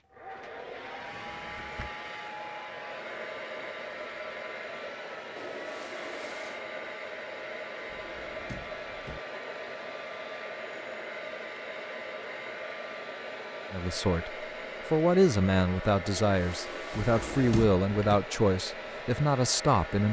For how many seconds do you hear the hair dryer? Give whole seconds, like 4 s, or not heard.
20 s.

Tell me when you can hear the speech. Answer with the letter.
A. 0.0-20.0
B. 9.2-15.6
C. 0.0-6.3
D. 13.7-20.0
D.